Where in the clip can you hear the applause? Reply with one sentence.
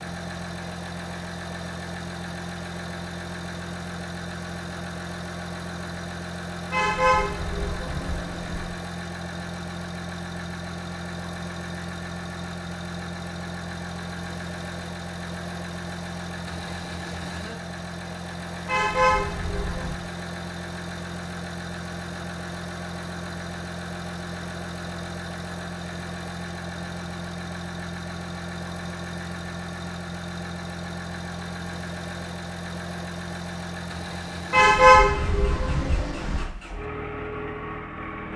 The applause can't be heard in this clip.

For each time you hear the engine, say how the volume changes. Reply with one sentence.
You can hear the engine from 0.0 to 38.3 s, at a steady volume.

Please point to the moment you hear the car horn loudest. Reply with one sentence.
The volume of the car horn peaks at 35 seconds.